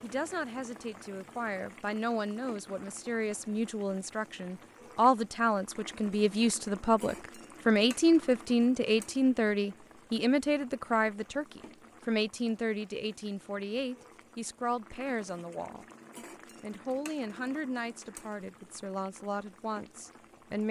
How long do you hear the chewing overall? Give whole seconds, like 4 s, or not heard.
not heard.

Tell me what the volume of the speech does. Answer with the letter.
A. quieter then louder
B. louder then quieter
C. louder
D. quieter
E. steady
B.